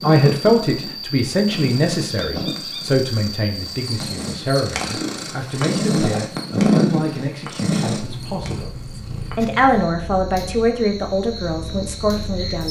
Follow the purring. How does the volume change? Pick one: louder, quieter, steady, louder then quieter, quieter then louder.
louder then quieter.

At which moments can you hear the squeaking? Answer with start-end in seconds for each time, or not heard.
2.0-2.8.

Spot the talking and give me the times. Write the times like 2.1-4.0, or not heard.
0.0-12.6.